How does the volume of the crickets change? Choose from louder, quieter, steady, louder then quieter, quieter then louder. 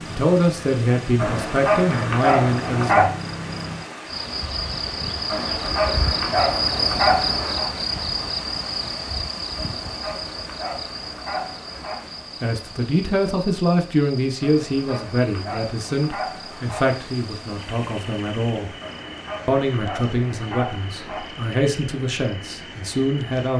louder then quieter.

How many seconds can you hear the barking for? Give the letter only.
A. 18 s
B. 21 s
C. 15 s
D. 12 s
D.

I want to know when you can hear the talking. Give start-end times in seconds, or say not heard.
0.1-3.1, 12.4-18.7, 19.4-23.5.